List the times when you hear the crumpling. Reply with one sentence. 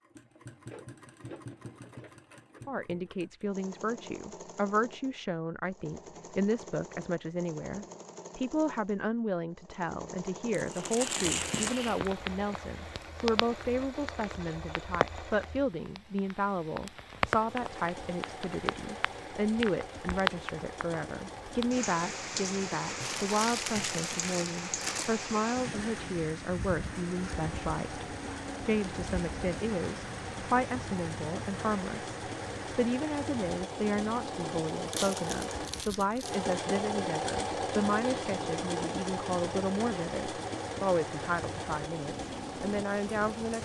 The crumpling can be heard from 10.5 to 11.9 s, from 23.0 to 25.1 s and from 34.9 to 36.5 s.